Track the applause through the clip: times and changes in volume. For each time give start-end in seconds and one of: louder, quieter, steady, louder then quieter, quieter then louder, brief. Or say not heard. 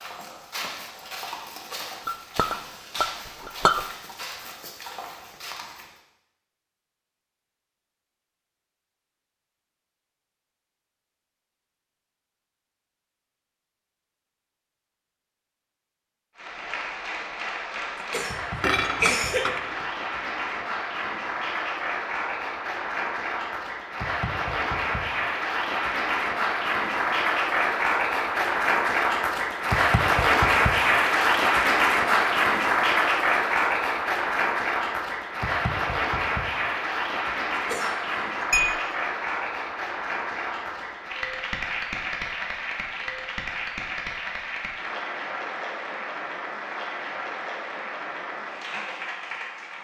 16.4-49.7 louder then quieter.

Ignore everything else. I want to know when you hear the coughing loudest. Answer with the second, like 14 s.
19 s.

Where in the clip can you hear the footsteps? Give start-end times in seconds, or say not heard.
0.0-5.9.